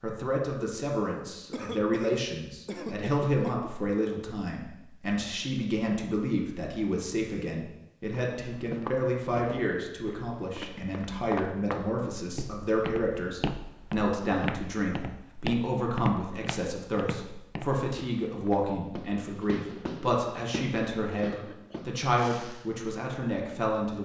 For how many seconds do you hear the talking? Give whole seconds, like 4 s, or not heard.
24 s.